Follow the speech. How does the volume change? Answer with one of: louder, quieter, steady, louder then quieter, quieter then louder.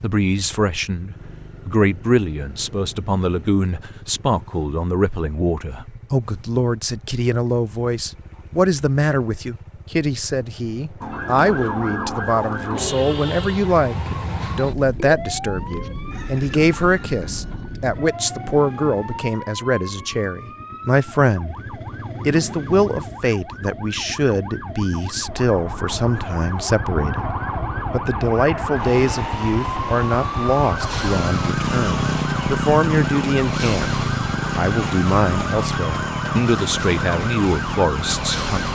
steady.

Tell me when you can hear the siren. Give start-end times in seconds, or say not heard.
11.0-38.7.